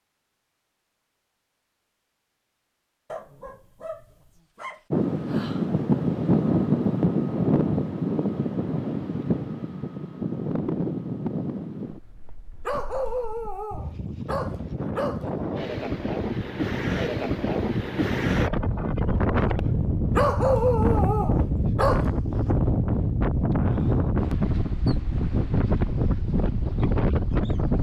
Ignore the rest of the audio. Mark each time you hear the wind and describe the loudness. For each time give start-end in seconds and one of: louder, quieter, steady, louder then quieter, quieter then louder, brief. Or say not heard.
4.9-27.7 quieter then louder.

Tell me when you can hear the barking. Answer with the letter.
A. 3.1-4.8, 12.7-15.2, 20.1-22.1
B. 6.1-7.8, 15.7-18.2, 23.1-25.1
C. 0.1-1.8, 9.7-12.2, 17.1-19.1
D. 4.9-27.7
A.